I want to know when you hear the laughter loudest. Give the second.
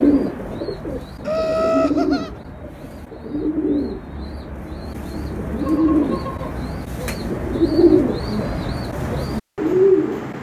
2 s.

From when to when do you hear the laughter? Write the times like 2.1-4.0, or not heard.
1.2-2.3, 5.6-6.5.